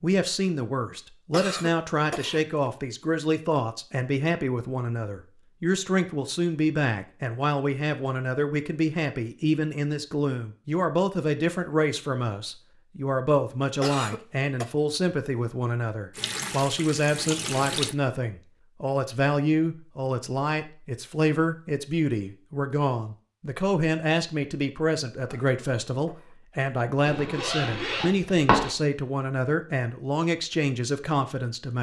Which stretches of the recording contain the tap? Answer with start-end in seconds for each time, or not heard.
16.1-17.9.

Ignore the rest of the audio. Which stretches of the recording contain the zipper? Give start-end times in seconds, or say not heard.
27.1-28.8.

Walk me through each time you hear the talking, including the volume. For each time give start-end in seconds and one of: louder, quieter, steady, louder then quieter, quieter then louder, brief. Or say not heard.
0.0-31.7 steady.